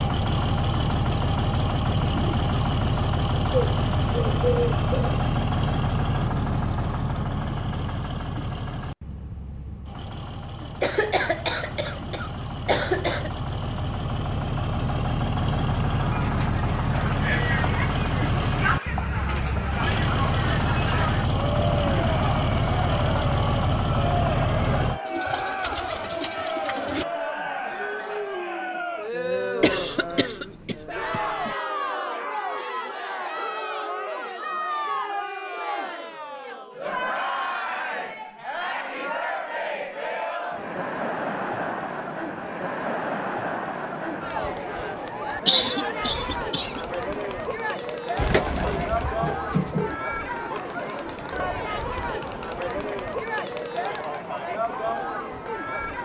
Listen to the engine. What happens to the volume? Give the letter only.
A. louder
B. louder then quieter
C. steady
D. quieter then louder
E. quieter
D.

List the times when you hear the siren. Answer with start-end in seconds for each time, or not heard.
not heard.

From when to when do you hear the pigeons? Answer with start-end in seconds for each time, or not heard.
3.5-5.2, 25.1-27.1, 48.1-50.0.